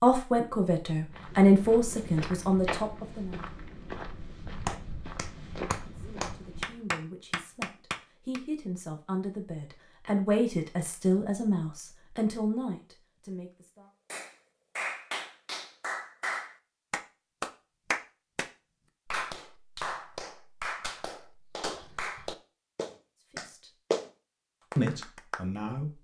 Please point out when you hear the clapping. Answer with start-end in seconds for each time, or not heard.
4.7-8.4, 14.1-24.1, 24.7-25.4.